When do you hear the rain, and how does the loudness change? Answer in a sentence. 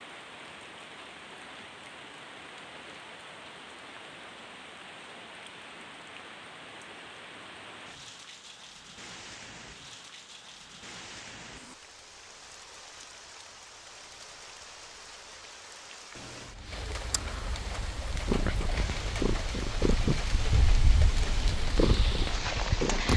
The rain can be heard from 0.0 to 23.1 s, getting louder.